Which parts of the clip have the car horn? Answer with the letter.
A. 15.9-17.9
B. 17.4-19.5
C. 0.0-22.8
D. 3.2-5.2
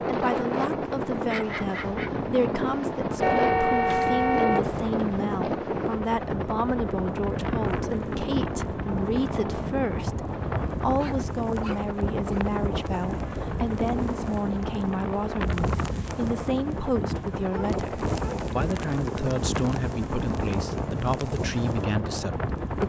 D.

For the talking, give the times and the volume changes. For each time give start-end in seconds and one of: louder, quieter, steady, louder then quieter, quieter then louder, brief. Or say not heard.
0.0-22.8 steady.